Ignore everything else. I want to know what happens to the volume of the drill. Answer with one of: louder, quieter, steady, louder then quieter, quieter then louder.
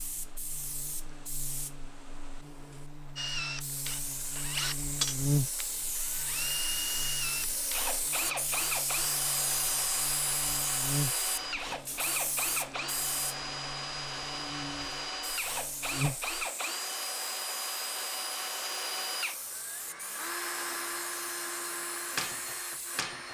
steady.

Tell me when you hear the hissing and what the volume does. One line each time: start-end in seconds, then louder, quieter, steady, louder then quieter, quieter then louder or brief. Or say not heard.
0.0-23.3 louder then quieter.